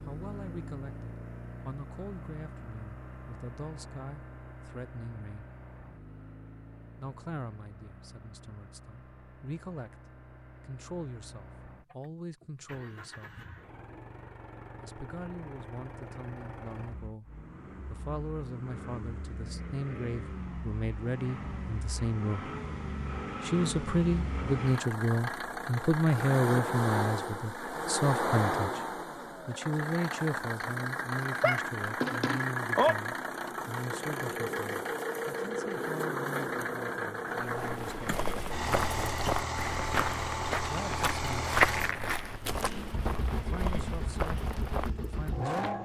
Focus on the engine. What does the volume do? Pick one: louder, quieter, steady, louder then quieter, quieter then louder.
louder.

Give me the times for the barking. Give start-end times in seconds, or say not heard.
31.4-33.0.